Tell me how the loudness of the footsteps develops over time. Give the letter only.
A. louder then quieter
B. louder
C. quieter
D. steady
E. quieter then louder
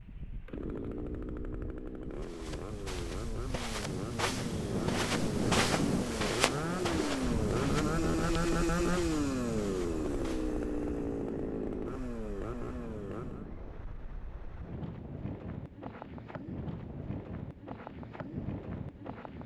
A.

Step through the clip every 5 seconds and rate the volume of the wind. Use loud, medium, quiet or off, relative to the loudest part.
medium, loud, medium, medium.